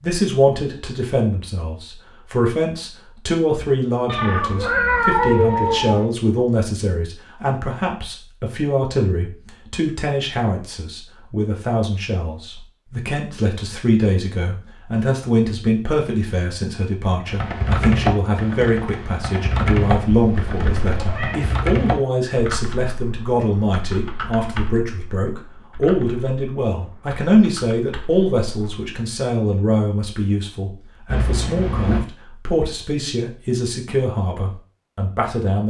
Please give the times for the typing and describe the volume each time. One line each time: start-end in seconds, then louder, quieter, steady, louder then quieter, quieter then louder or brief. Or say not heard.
17.2-28.9 quieter.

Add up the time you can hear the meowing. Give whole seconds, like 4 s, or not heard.
4 s.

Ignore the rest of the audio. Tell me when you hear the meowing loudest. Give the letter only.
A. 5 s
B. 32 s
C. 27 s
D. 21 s
A.